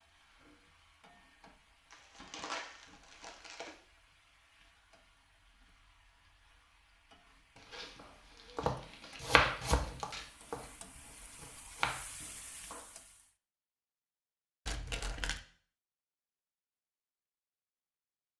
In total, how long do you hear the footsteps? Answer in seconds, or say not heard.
not heard.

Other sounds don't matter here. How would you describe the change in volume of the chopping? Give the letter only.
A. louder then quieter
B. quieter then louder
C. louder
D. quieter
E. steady
B.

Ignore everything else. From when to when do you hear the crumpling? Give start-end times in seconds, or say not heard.
1.9-3.8, 7.5-10.3, 14.7-15.4.